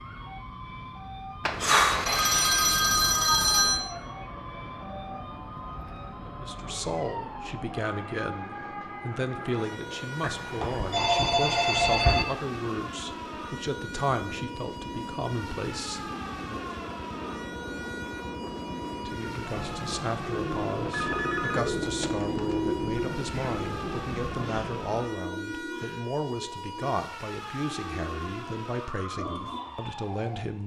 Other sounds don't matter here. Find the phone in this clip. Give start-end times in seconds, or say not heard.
1.4-3.9, 10.2-12.2, 20.9-22.6.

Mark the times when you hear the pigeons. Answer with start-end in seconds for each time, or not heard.
20.2-30.0.